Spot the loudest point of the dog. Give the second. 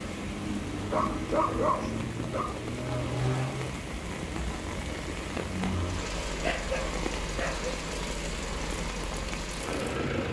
2 s.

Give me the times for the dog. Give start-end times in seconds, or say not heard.
0.9-2.5, 6.4-7.8.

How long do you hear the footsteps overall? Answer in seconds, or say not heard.
not heard.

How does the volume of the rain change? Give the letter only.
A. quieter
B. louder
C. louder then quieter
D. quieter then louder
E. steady
E.